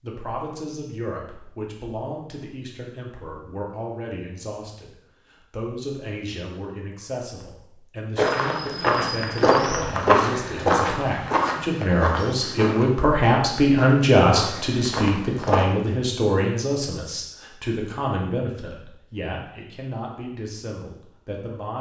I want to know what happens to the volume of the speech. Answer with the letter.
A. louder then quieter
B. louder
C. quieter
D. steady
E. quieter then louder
A.